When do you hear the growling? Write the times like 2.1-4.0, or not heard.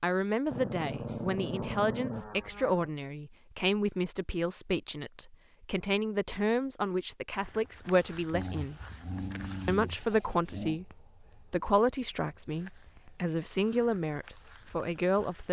0.5-2.9, 8.3-10.8.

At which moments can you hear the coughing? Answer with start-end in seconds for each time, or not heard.
not heard.